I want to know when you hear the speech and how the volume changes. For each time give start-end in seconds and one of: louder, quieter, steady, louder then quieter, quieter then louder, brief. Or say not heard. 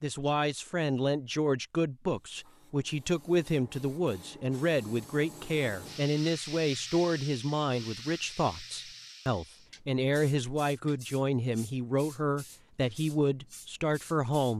0.0-14.5 steady.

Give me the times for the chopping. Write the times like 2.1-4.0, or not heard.
not heard.